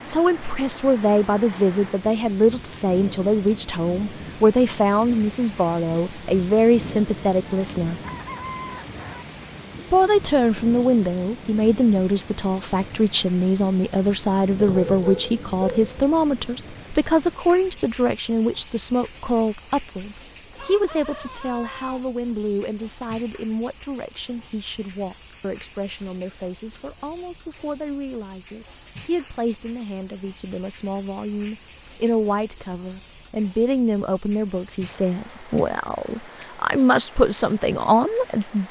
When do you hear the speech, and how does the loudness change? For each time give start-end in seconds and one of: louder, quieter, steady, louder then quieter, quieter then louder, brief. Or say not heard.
0.0-8.0 steady
9.9-38.6 quieter then louder.